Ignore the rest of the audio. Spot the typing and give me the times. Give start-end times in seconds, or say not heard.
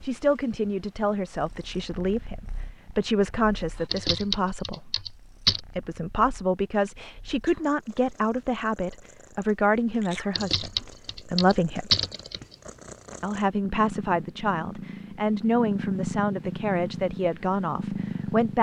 3.9-5.6, 10.3-12.6.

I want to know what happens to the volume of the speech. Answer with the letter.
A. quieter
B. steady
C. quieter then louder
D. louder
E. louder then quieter
B.